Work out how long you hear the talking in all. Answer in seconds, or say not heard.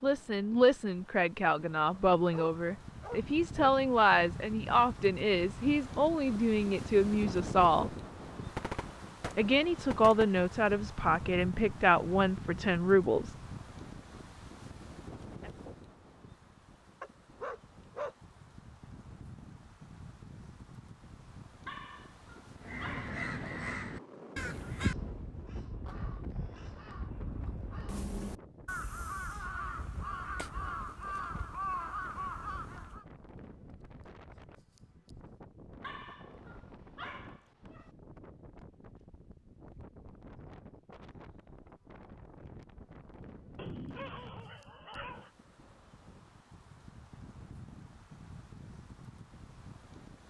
12 s.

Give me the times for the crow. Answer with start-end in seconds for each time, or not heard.
22.6-33.0.